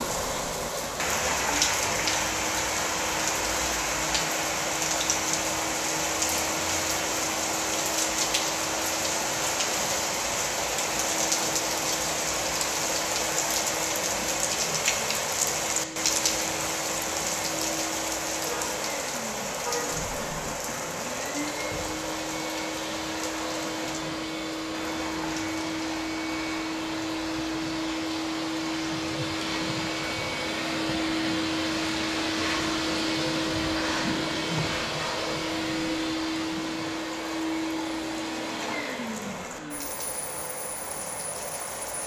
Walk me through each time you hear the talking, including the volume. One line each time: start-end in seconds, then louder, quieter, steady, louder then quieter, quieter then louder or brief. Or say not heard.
not heard.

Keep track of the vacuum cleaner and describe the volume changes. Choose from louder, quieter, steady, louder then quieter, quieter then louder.
louder.